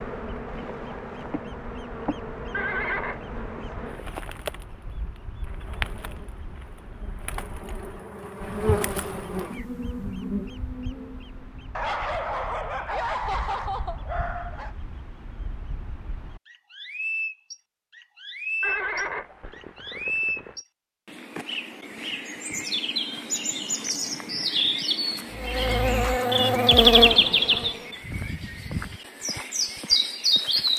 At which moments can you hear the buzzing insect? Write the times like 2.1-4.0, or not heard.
0.0-11.8, 25.3-28.0.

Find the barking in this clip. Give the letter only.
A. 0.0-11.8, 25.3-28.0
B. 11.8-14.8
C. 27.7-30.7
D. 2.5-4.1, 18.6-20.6
B.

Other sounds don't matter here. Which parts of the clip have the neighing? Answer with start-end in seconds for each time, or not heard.
2.5-4.1, 18.6-20.6.